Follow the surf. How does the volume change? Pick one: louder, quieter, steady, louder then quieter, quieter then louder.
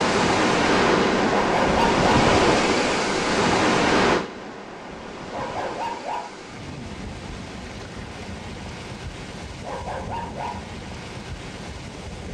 quieter.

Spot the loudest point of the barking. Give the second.
2 s.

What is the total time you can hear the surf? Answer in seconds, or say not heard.
12 s.